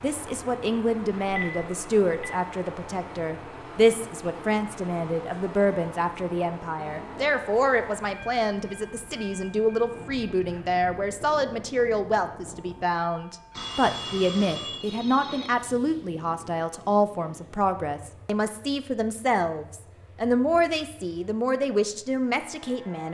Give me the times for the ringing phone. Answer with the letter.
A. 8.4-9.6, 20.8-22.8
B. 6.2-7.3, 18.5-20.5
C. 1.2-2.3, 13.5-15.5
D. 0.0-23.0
C.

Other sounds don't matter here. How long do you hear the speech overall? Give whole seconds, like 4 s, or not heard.
23 s.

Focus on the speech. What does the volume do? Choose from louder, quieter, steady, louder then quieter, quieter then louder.
steady.